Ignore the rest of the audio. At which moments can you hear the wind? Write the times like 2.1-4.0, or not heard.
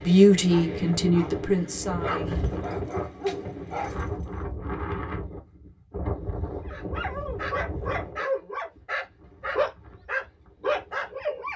0.0-11.5.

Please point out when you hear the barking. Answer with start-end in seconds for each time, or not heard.
0.0-4.2, 6.7-11.5.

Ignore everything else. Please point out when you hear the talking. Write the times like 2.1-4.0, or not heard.
0.0-2.4.